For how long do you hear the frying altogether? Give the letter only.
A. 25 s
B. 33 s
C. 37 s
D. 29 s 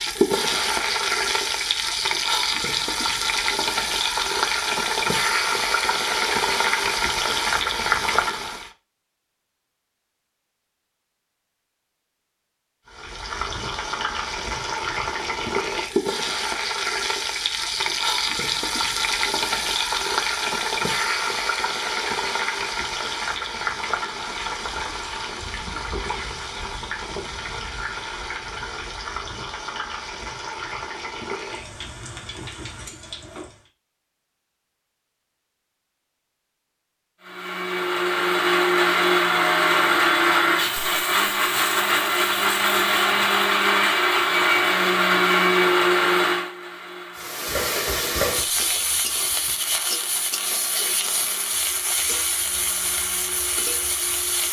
C.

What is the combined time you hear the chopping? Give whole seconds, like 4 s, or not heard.
not heard.